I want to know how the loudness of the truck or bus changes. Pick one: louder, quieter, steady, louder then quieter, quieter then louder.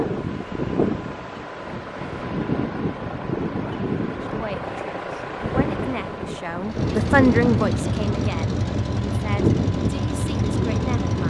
steady.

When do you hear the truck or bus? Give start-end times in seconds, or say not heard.
6.6-11.2.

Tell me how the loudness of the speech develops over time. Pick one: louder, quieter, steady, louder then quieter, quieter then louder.
louder then quieter.